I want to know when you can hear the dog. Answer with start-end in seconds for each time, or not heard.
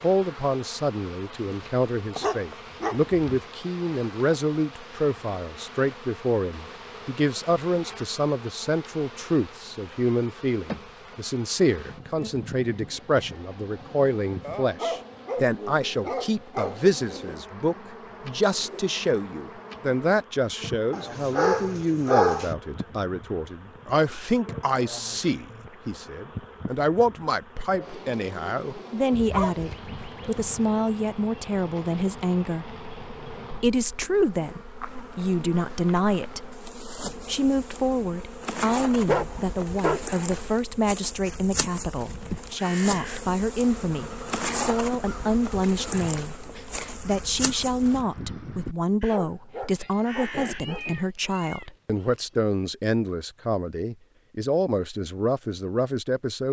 1.5-3.3, 14.4-16.9, 20.9-22.6, 29.1-30.7, 39.0-40.1, 49.1-50.9.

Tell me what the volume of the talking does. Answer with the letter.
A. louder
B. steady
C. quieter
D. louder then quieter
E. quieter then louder
B.